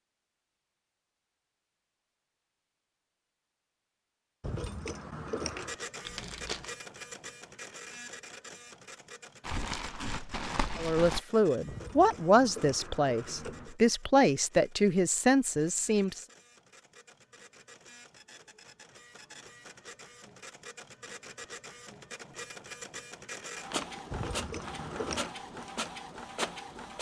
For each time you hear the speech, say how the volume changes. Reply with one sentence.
The speech can be heard from 10.8 to 16.2 s, at a steady volume.